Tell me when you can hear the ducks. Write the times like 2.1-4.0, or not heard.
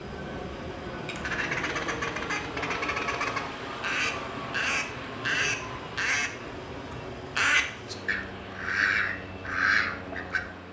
1.1-6.3, 6.9-10.5.